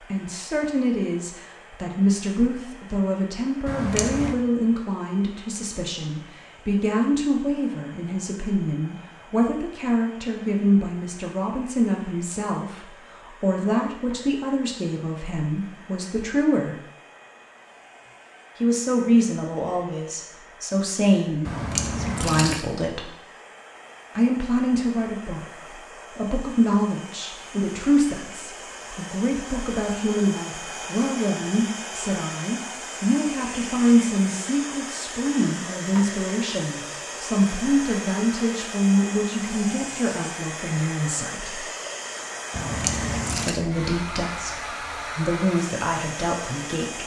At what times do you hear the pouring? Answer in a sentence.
You can hear the pouring from 3.6 to 4.3 s, from 21.4 to 22.6 s and from 42.5 to 43.6 s.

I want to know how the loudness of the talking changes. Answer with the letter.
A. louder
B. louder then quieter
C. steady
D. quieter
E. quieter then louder
C.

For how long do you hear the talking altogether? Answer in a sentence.
You can hear the talking for 42 seconds altogether.